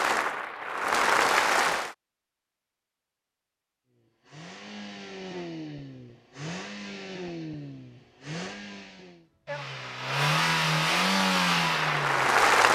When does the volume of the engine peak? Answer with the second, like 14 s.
11 s.